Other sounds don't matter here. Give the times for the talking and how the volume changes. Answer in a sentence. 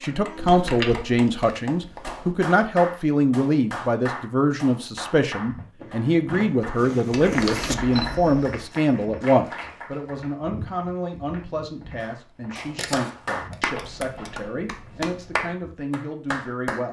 The talking can be heard from 0.0 to 16.8 s, getting quieter.